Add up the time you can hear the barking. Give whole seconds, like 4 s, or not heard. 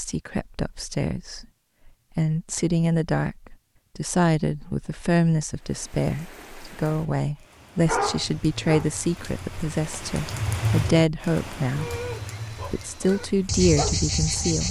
4 s.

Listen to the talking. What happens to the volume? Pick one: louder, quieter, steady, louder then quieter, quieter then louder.
steady.